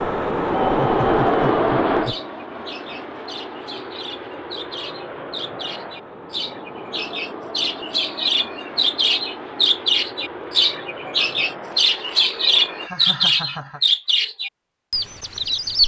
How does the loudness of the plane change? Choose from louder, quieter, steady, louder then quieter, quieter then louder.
quieter.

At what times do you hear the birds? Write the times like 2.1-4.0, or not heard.
0.0-15.8.